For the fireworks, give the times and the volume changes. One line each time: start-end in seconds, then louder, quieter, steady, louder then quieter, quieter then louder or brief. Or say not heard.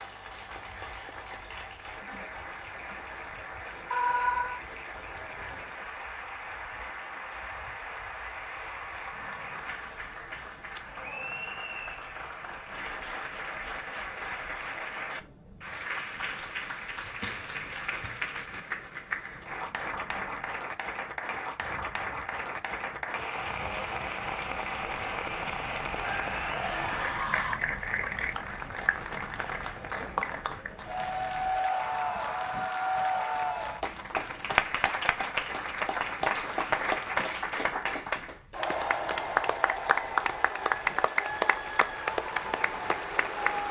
not heard.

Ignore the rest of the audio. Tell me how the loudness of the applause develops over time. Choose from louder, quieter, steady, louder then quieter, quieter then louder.
louder.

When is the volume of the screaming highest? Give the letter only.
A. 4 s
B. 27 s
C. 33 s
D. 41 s
A.